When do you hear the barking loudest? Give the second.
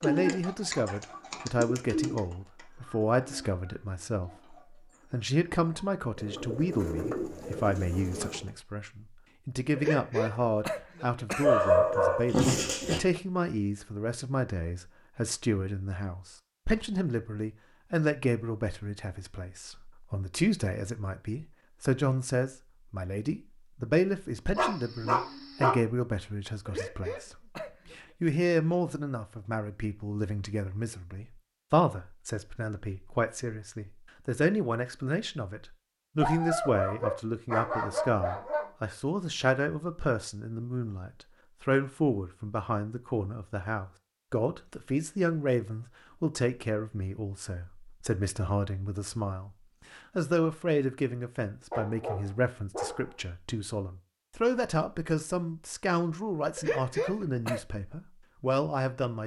12 s.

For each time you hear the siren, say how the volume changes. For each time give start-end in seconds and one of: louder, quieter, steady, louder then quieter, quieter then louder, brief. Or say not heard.
not heard.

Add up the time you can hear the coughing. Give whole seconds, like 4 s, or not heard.
4 s.